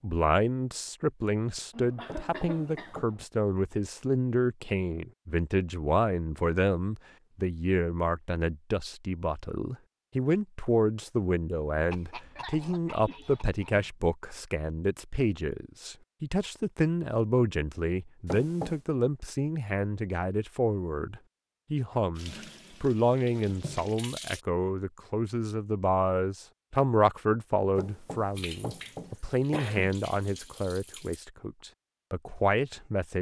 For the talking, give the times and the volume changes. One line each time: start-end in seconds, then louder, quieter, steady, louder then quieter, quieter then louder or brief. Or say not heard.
0.0-33.1 steady.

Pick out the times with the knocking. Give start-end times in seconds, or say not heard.
2.0-3.0, 18.2-18.8, 27.8-29.2.